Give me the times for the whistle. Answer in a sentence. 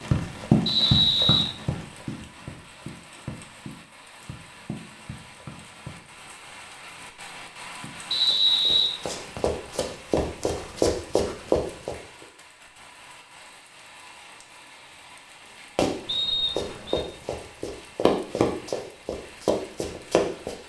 You can hear the whistle from 0.7 to 1.4 s, from 8.1 to 9.6 s and from 16.1 to 17.1 s.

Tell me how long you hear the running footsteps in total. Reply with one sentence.
You can hear the running footsteps for 15 seconds altogether.